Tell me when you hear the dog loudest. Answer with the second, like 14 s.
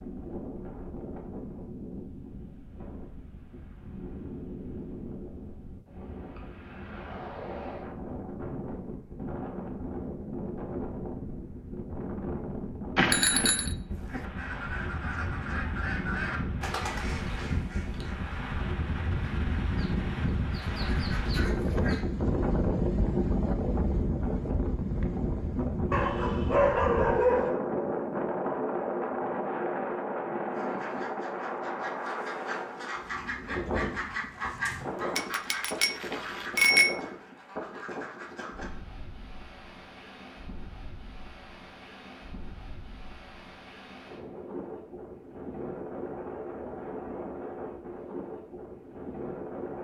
27 s.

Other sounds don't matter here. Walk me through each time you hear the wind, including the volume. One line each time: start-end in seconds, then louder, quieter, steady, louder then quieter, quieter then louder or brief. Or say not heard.
0.0-49.7 louder then quieter.